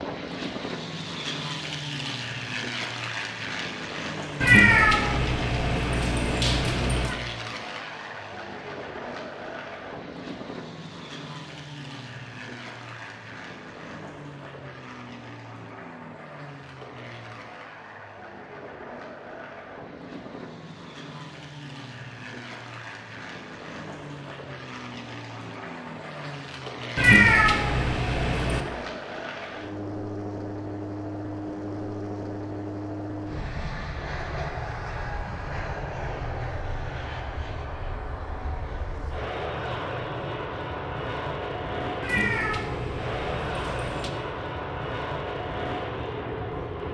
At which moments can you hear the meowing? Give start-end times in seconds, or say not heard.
4.4-7.2, 26.9-28.6, 42.0-44.1.